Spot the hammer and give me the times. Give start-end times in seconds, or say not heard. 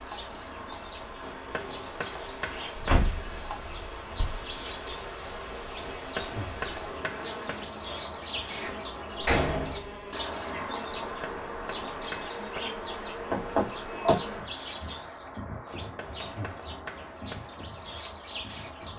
1.2-3.0, 5.8-7.7, 11.1-12.8, 15.7-17.5.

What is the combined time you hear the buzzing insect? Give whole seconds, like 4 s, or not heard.
19 s.